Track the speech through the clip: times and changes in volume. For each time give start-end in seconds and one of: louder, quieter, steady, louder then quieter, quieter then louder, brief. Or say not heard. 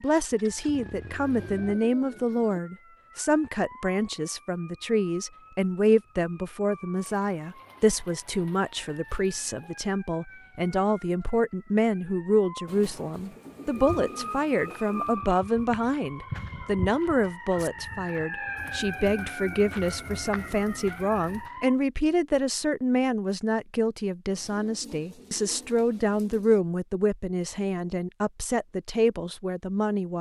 0.0-30.1 steady.